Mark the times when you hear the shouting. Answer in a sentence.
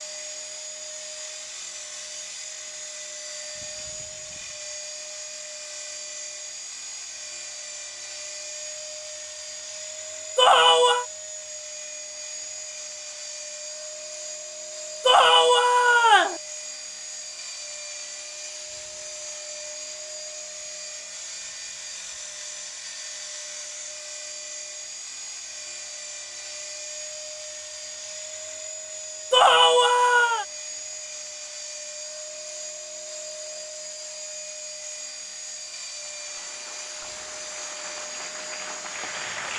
The shouting can be heard from 10.3 to 11.1 s, from 15.1 to 16.4 s and from 29.3 to 30.4 s.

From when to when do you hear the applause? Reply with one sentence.
The applause can be heard from 35.9 to 39.5 s.